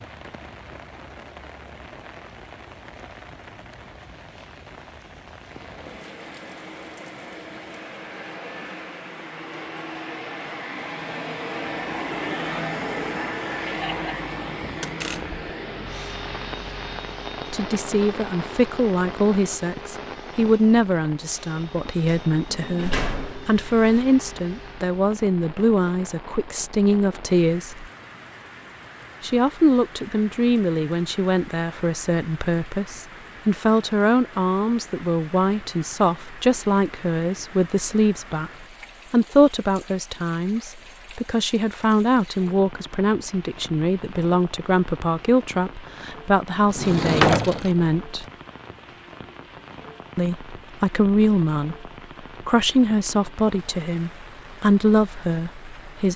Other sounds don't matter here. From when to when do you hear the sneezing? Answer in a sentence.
The sneezing can't be heard in this clip.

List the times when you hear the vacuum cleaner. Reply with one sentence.
The vacuum cleaner can be heard from 5.5 to 24.9 s.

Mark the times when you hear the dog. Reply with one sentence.
The dog can't be heard in this clip.